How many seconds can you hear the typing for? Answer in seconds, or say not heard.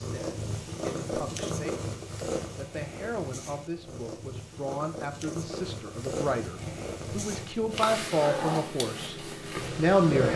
not heard.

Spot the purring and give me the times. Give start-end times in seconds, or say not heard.
0.0-10.3.